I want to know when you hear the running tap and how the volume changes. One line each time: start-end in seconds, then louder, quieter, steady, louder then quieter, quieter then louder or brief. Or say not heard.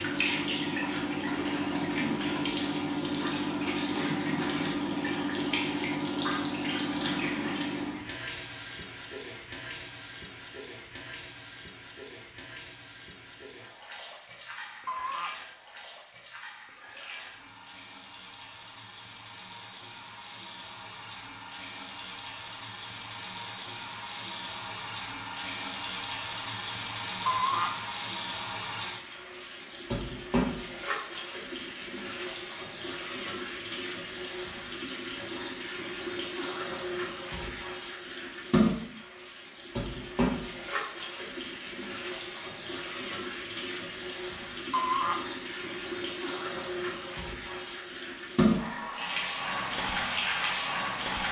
0.0-51.2 quieter then louder.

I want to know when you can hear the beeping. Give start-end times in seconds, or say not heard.
14.8-15.3, 27.2-27.8, 44.7-45.2.